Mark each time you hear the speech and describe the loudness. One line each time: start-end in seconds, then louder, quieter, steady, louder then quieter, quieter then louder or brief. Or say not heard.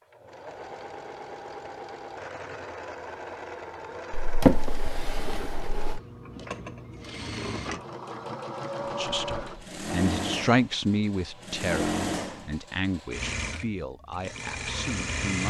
8.8-15.4 louder then quieter.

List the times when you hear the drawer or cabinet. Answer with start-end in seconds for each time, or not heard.
4.1-6.0.